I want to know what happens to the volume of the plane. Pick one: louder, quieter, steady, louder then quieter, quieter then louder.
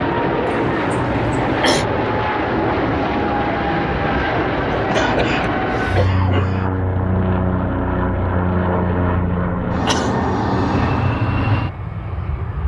steady.